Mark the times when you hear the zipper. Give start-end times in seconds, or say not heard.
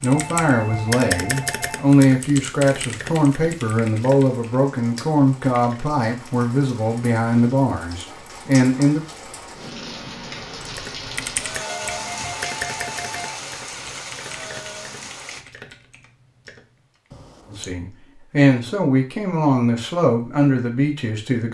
17.1-17.8.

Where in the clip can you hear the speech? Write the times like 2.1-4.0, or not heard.
0.0-9.0, 17.5-21.4.